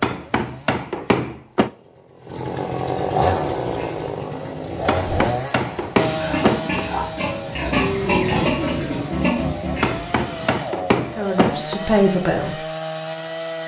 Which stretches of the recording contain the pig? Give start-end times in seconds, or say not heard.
3.2-10.6.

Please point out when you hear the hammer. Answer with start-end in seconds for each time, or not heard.
0.0-1.7, 4.8-6.8, 9.8-11.8.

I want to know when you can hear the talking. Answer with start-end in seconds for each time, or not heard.
10.9-12.7.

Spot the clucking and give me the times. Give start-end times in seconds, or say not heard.
not heard.